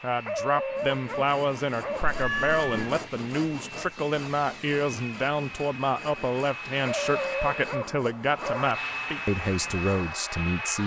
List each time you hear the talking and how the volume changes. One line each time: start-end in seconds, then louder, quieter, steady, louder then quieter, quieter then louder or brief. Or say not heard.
0.0-10.8 steady.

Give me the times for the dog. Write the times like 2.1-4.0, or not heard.
0.2-2.2, 6.8-8.7.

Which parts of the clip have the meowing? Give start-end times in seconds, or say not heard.
2.0-2.9.